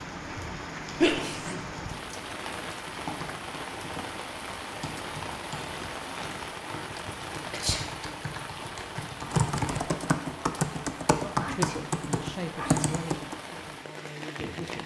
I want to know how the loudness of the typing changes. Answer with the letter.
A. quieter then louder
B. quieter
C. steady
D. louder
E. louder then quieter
D.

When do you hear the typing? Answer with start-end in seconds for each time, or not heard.
3.0-13.3.